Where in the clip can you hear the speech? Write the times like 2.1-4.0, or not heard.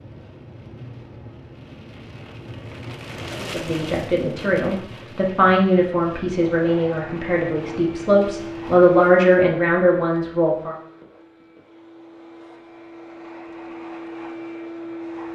3.4-10.8.